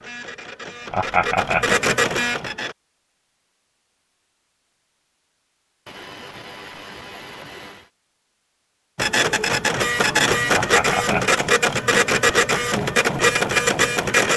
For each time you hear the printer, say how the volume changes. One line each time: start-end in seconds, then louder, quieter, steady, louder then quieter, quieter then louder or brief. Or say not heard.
0.0-2.8 brief
8.9-14.3 steady.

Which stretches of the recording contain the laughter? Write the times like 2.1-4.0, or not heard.
0.9-1.9, 5.8-7.9, 10.6-11.6.